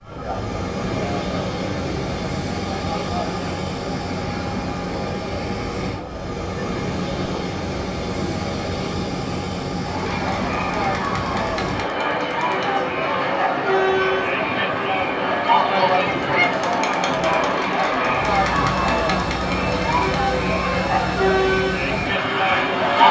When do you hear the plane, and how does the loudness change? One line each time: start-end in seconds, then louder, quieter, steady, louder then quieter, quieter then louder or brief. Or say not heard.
0.0-23.0 steady.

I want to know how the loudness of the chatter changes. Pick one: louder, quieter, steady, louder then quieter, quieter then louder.
louder.